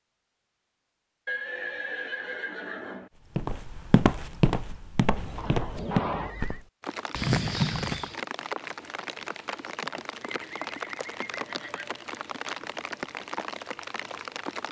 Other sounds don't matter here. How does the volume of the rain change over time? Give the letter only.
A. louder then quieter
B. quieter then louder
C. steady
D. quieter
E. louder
C.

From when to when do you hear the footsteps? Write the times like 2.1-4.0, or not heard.
3.4-8.1.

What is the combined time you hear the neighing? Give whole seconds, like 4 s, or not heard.
5 s.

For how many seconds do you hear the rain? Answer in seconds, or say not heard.
8 s.